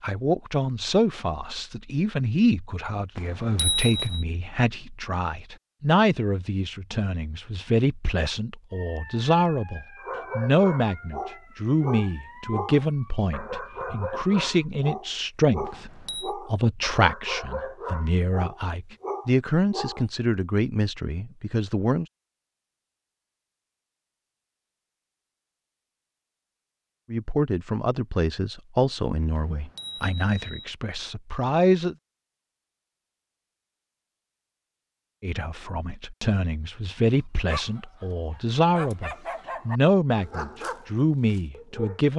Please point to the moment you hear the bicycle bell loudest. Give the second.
4 s.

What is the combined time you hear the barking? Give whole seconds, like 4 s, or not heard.
15 s.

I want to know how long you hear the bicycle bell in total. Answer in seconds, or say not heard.
3 s.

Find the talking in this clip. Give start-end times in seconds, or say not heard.
0.0-22.1, 27.1-31.9, 35.2-42.1.